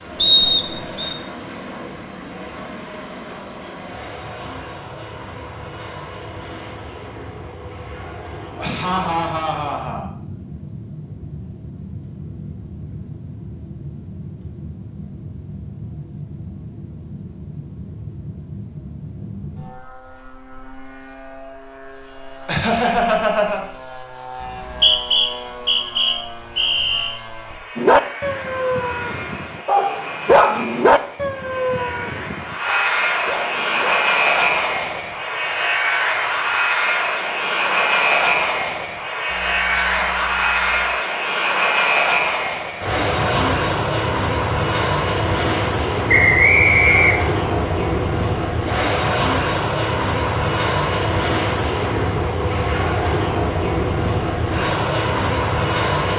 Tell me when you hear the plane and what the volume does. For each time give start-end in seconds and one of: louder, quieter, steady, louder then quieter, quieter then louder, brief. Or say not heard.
0.0-56.1 louder.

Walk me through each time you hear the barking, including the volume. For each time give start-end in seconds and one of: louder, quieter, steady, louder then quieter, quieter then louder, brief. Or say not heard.
27.8-34.0 louder then quieter.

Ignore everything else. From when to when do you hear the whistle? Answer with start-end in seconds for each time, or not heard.
0.1-1.1, 24.4-27.1, 46.0-47.2.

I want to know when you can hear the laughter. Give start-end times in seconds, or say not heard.
8.6-10.1, 22.4-23.6, 39.3-40.9.